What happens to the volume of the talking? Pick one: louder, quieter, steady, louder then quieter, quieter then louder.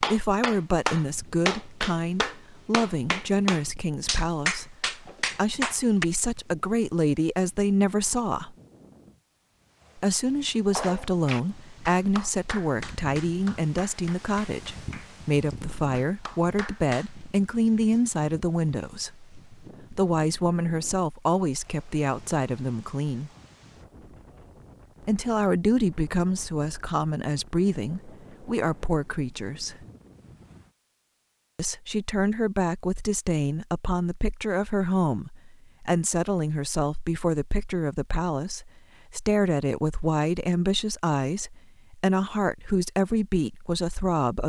steady.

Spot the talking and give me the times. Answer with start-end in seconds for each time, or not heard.
0.0-8.6, 9.9-23.3, 25.0-29.9, 31.6-44.4.